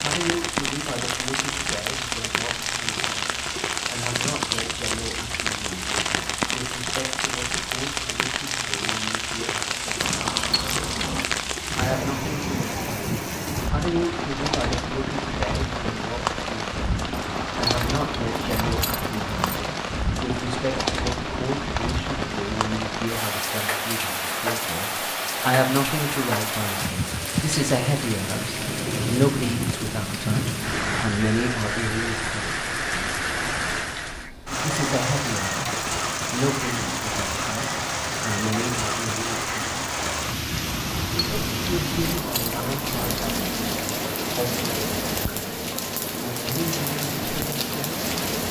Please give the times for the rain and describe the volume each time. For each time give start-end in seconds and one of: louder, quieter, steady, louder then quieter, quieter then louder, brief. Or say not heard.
0.0-48.4 steady.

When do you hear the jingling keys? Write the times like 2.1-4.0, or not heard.
10.0-11.2, 17.1-19.7, 40.6-43.2.